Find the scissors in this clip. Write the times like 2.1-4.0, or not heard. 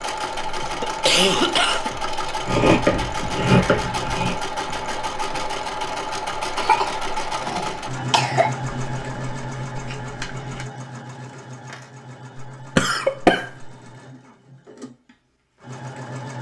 2.5-4.3, 8.8-10.7.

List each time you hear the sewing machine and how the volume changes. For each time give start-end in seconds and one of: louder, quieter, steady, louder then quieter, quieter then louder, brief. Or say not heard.
0.0-16.3 quieter.